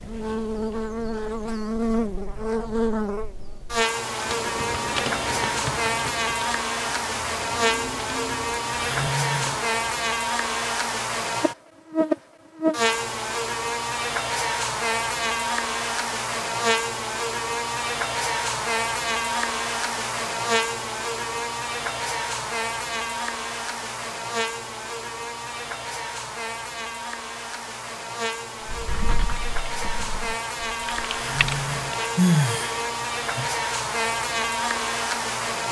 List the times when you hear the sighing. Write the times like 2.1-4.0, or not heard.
8.8-9.6, 31.1-33.5.